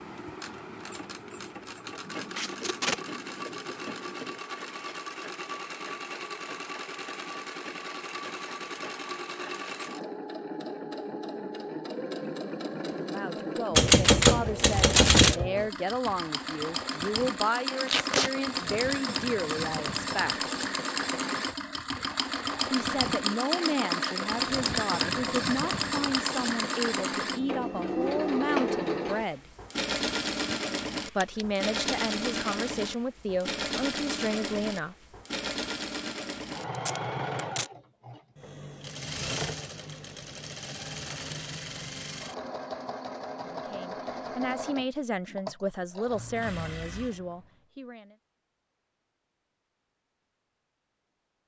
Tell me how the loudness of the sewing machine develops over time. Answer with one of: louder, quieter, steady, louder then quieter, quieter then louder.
louder then quieter.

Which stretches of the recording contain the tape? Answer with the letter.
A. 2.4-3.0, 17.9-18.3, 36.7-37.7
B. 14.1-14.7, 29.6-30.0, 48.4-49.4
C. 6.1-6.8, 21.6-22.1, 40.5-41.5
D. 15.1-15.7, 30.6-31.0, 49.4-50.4
A.